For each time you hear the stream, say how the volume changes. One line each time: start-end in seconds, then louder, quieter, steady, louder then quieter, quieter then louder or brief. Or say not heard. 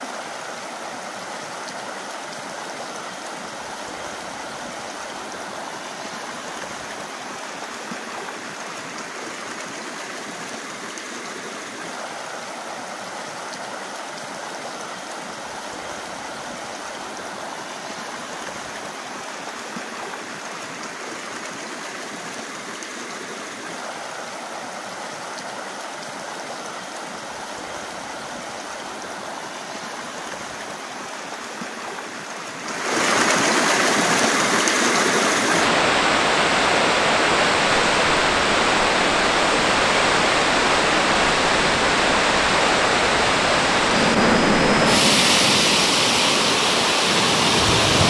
0.0-48.0 louder.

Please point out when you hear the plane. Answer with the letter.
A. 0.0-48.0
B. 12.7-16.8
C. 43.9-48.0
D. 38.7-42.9
C.